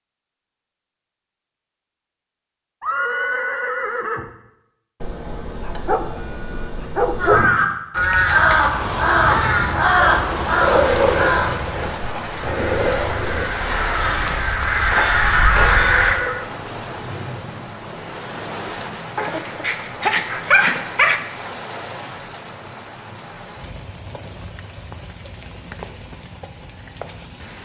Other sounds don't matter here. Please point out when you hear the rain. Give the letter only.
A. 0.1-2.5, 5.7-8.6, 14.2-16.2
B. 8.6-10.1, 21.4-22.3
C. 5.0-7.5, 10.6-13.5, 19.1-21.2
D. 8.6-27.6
D.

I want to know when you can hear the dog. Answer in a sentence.
You can hear the dog from 5.0 to 7.5 s, from 10.6 to 13.5 s and from 19.1 to 21.2 s.